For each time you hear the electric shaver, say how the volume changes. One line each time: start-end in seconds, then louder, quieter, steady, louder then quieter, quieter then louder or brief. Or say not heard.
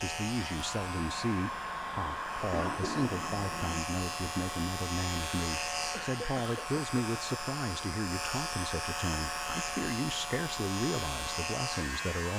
0.0-12.3 louder.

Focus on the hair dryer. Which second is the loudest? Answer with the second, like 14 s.
2 s.